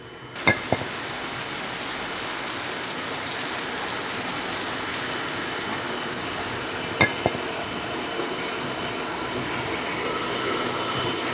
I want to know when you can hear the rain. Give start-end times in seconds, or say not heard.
0.0-11.2.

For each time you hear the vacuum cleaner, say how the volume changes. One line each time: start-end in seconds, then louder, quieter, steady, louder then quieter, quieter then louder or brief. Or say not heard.
0.0-11.2 louder.